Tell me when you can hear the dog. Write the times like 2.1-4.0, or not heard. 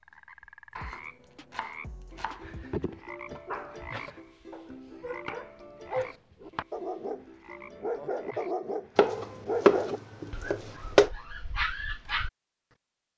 2.4-12.3.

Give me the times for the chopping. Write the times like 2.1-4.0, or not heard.
0.8-2.6, 4.7-6.7, 8.9-11.1.